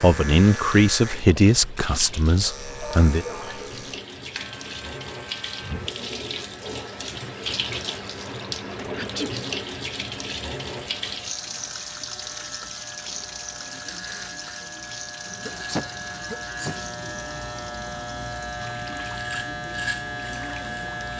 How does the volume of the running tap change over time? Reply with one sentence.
The volume of the running tap goes up, then down.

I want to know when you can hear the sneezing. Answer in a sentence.
You can hear the sneezing from 2.8 to 3.7 s, from 8.9 to 9.3 s and from 15.4 to 16.8 s.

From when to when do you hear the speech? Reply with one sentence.
You can hear the speech from 0.0 to 3.2 s.